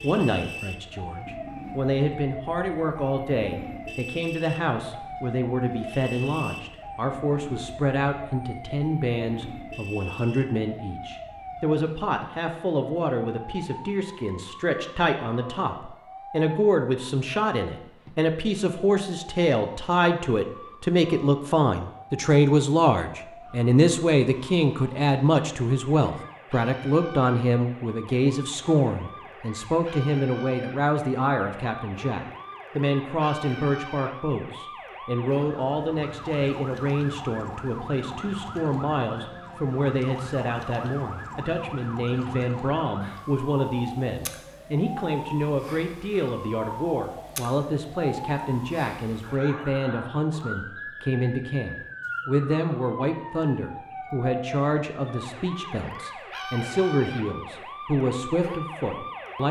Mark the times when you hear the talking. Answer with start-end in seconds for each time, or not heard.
0.0-59.4.